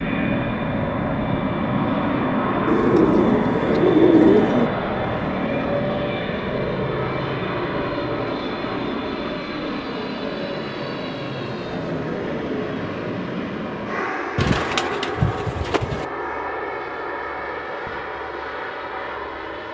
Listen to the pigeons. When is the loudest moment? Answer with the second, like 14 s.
4 s.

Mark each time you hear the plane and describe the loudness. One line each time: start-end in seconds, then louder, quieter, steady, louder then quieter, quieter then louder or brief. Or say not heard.
0.0-19.7 quieter.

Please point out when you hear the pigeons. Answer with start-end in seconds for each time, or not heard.
2.6-4.7, 14.3-16.1.